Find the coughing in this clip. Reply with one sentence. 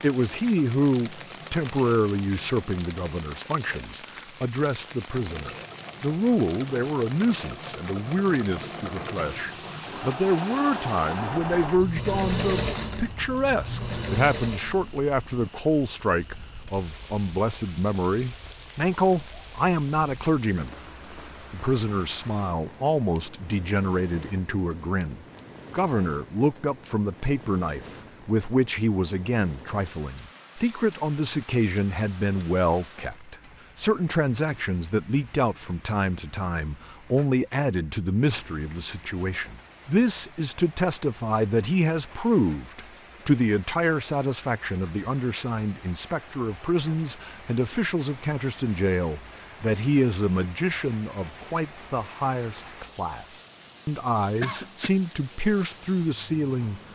The coughing can be heard from 54.4 to 54.9 s.